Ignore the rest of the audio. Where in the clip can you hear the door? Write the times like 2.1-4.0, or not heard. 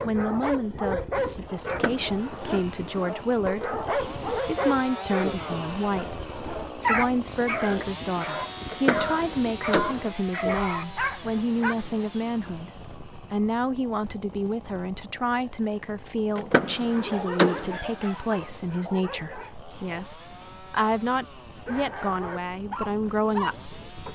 1.6-2.2, 8.7-10.1, 16.4-17.8.